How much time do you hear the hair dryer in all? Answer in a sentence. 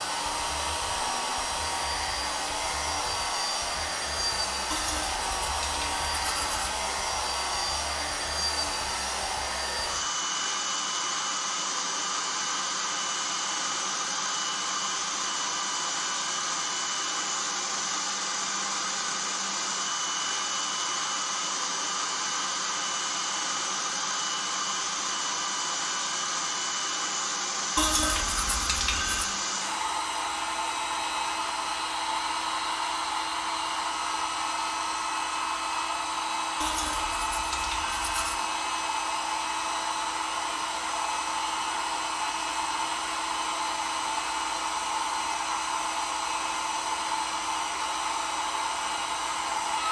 The hair dryer can be heard for 50 seconds in total.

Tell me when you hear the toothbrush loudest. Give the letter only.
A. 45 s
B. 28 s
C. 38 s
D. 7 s
B.